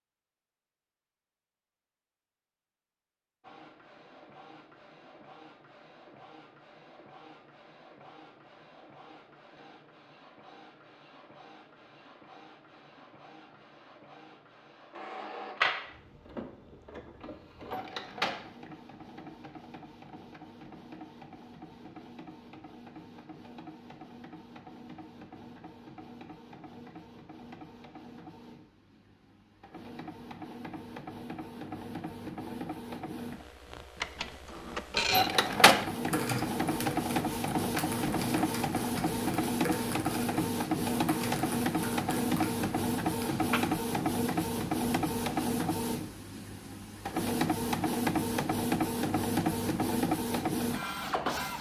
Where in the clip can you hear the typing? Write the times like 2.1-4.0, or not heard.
36.0-43.6.